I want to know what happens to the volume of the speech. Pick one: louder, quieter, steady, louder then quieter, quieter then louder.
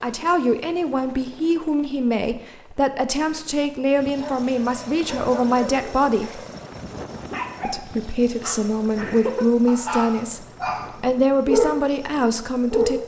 steady.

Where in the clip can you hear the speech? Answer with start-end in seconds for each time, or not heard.
0.0-6.4, 7.6-13.0.